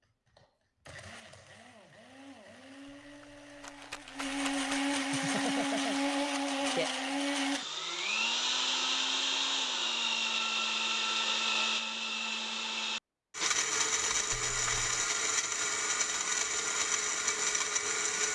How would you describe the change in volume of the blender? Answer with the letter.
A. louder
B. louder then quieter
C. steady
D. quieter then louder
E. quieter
A.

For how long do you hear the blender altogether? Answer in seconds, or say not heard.
18 s.